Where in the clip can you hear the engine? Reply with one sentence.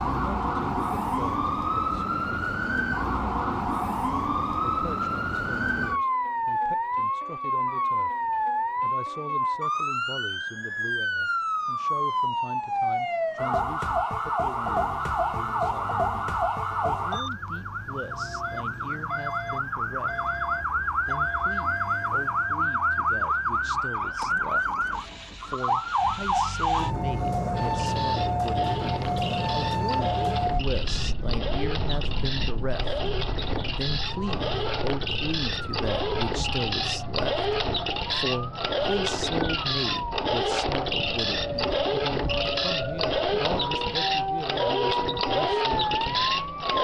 The engine can be heard from 14.8 to 46.8 s.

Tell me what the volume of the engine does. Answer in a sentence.
The volume of the engine goes up.